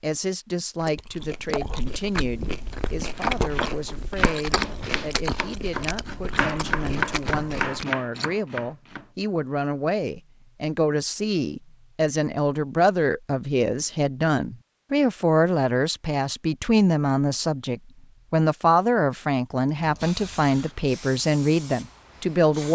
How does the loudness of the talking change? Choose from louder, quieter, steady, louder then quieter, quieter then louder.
louder.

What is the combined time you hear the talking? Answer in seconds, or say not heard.
23 s.